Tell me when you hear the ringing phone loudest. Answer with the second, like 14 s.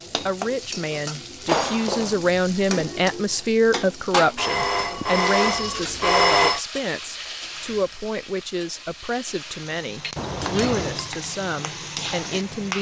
6 s.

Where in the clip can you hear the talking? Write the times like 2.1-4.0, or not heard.
0.1-12.7.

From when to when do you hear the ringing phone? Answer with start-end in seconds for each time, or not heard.
1.4-2.1, 4.3-6.6, 10.2-11.1.